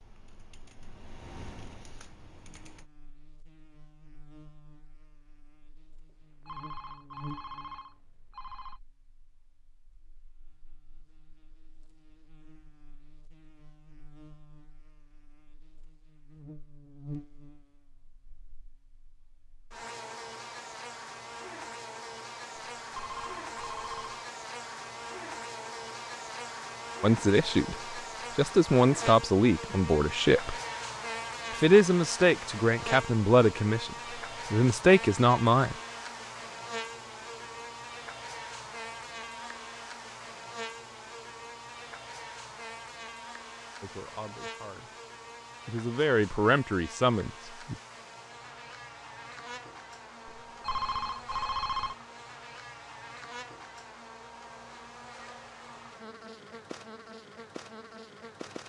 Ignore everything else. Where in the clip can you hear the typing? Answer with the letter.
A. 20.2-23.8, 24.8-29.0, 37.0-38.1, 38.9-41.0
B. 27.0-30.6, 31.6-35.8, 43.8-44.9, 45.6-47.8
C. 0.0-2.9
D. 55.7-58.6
C.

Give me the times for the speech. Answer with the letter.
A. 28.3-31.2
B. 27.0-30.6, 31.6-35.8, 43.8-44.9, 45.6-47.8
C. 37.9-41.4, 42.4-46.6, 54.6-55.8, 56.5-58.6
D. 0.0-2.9
B.